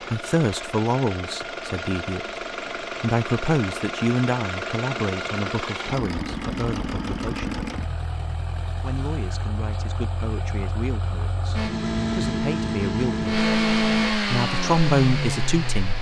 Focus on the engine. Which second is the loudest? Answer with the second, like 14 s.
14 s.